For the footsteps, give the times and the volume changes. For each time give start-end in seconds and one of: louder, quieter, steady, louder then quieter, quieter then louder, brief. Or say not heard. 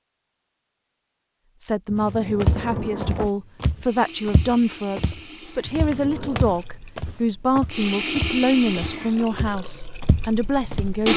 1.9-10.9 quieter.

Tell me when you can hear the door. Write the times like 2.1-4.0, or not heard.
1.9-3.3, 5.6-6.5.